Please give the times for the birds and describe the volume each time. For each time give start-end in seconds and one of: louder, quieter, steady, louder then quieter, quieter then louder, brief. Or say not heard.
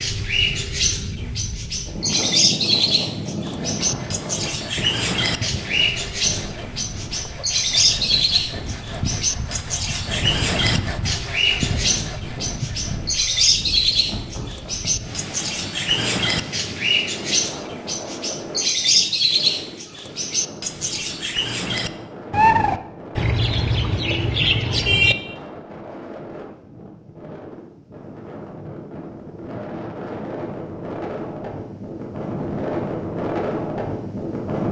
0.0-25.1 steady.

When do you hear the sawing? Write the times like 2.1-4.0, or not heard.
3.5-13.2.